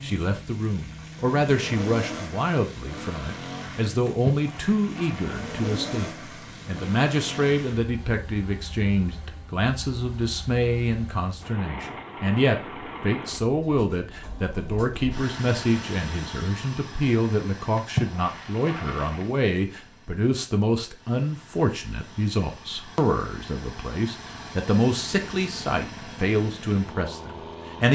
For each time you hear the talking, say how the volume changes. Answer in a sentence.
You can hear the talking from 0.0 to 27.9 s, at a steady volume.